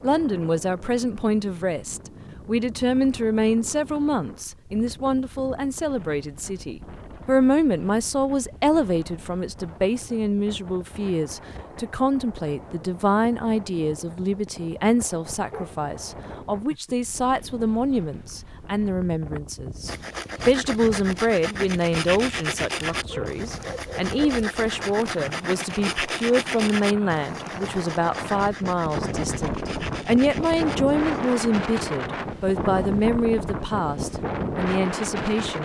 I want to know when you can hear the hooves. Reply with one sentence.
The hooves can't be heard in this clip.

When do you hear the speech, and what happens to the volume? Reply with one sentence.
You can hear the speech from 0.0 to 35.6 s, at a steady volume.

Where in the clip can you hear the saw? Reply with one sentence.
The saw can be heard from 19.9 to 31.4 s.